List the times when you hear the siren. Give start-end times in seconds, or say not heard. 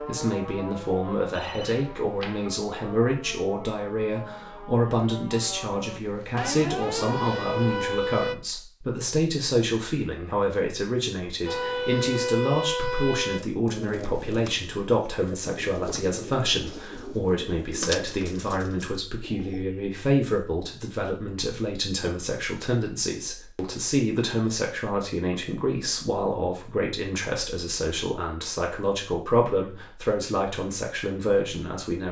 0.0-8.3, 11.4-13.4.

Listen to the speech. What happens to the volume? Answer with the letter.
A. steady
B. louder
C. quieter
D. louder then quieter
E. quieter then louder
A.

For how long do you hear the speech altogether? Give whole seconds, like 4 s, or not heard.
32 s.